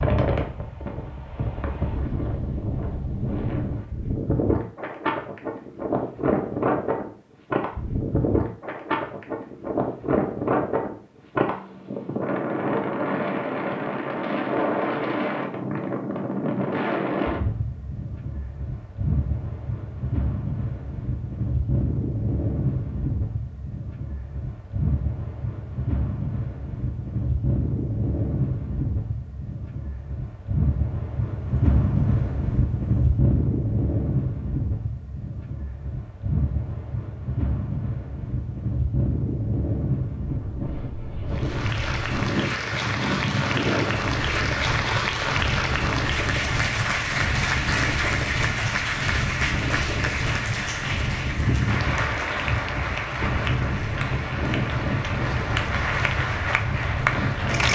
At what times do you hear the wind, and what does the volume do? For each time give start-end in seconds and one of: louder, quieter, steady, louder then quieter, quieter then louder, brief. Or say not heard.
0.0-57.7 steady.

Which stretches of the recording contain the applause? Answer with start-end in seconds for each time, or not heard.
41.3-57.7.